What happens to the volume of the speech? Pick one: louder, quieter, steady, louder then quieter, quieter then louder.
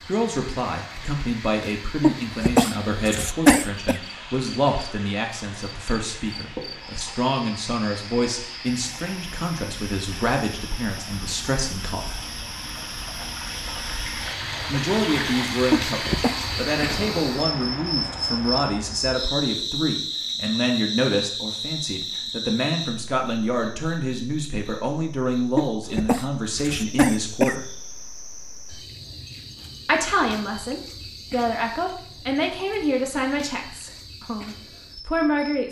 steady.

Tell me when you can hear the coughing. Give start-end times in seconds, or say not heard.
2.0-4.0, 15.7-16.4, 25.6-27.6.